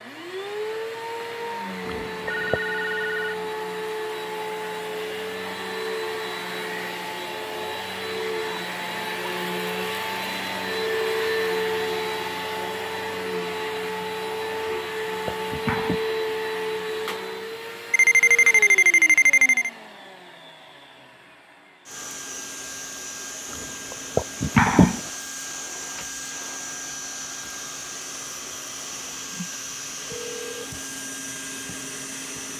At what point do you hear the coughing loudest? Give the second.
25 s.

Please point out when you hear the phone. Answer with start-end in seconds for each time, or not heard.
2.2-3.4, 17.9-19.7, 29.3-30.7.